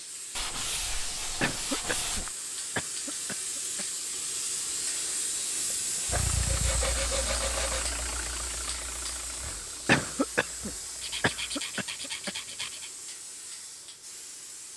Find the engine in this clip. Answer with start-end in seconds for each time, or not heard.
6.0-11.6.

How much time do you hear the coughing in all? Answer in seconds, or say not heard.
5 s.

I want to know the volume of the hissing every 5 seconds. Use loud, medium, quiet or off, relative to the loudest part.
loud, loud, medium.